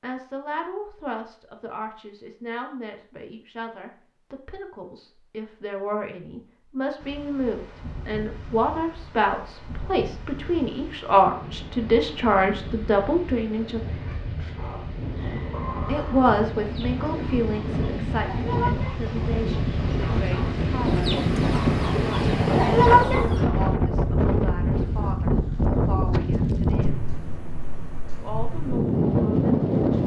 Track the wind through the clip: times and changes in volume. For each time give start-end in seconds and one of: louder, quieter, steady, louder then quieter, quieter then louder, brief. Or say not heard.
7.0-30.0 louder.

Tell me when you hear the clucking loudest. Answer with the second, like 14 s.
23 s.